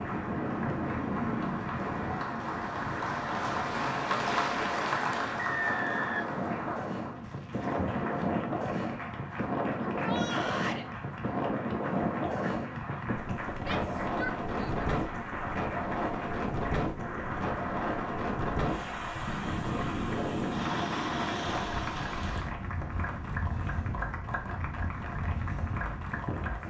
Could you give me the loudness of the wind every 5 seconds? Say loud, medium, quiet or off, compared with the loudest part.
loud, loud, loud, loud, loud, medium.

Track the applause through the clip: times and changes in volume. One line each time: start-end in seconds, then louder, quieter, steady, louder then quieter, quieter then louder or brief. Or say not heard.
0.0-26.6 quieter.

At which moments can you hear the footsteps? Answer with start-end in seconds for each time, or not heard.
not heard.